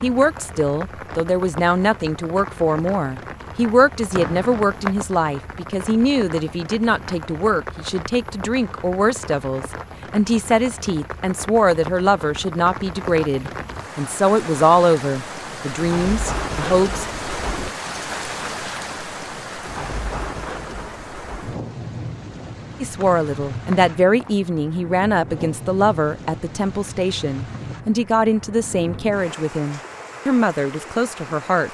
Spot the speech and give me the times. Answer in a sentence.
The speech can be heard from 0.0 to 17.1 s and from 22.8 to 31.6 s.